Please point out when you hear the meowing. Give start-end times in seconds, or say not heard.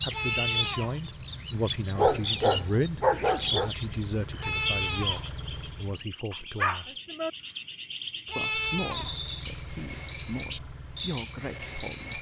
not heard.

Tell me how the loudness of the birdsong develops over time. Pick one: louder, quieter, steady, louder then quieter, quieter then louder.
quieter then louder.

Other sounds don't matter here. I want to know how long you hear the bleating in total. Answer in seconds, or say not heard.
3 s.